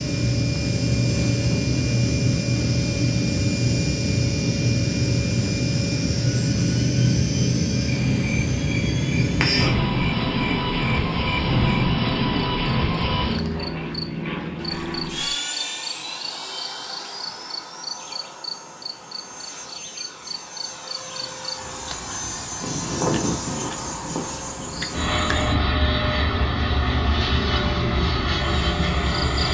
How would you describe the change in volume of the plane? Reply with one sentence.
The volume of the plane goes down, then up.